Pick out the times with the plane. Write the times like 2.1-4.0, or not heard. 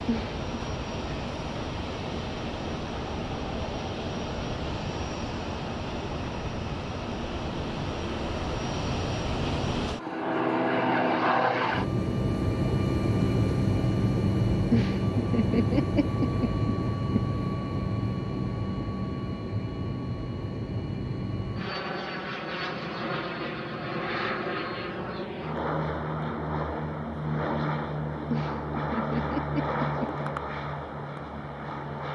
0.0-32.1.